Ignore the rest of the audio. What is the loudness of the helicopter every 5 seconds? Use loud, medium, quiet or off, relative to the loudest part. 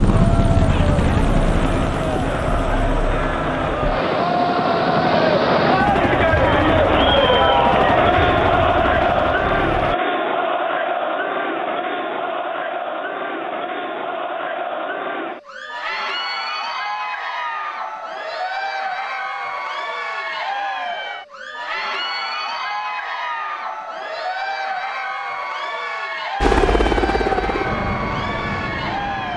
loud, loud, off, off, off, loud.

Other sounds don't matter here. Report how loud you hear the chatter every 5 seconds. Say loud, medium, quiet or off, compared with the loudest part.
medium, loud, medium, medium, medium, medium.